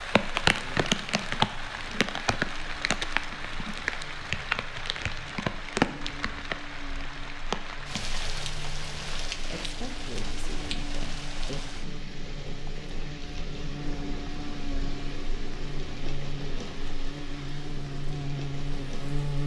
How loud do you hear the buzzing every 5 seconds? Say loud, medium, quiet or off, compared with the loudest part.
quiet, medium, medium, loud.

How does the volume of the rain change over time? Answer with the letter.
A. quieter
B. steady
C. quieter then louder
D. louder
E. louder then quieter
A.